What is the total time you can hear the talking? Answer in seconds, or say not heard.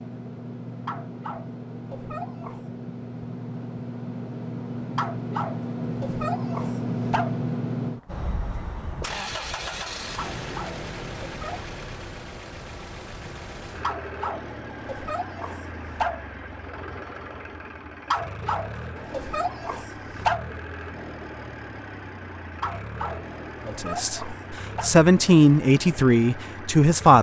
3 s.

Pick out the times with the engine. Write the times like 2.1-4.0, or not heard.
0.0-27.1.